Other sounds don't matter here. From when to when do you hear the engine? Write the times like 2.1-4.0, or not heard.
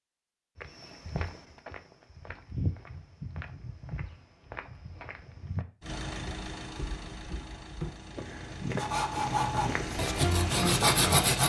5.8-11.4.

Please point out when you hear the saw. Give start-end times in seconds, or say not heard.
8.8-11.4.